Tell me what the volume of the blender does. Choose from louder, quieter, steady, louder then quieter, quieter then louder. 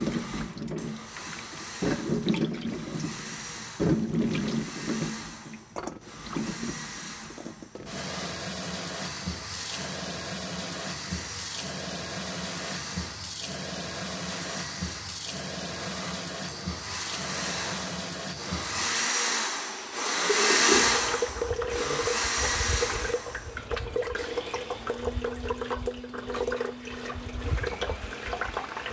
louder then quieter.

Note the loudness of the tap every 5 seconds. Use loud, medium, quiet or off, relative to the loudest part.
loud, medium, medium, medium, loud, loud.